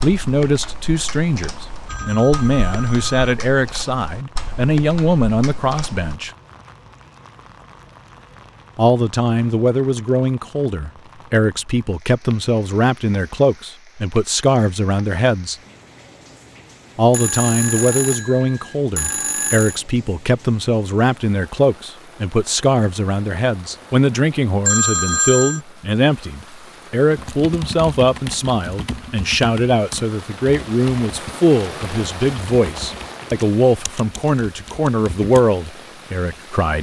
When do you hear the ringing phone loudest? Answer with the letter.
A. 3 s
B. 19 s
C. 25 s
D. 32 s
C.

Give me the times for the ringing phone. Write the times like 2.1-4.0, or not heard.
1.9-3.4, 17.1-19.8, 24.6-25.6.